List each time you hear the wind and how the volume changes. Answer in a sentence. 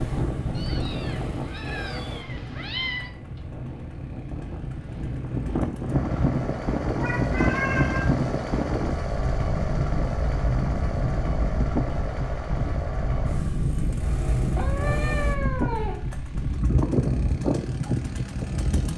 You can hear the wind from 0.0 to 18.9 s, getting louder.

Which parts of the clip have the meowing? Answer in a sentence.
You can hear the meowing from 0.6 to 3.1 s, from 7.0 to 8.1 s and from 14.5 to 16.0 s.